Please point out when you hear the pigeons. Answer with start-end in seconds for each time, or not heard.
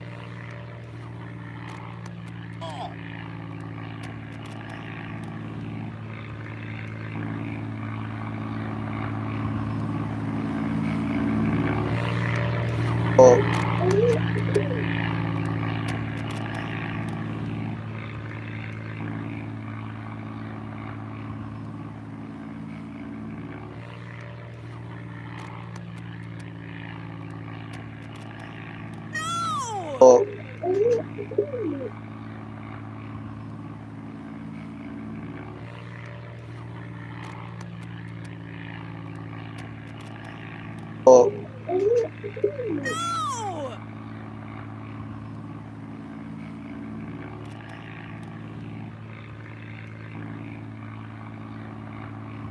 13.2-14.8, 30.0-31.9, 41.0-43.0.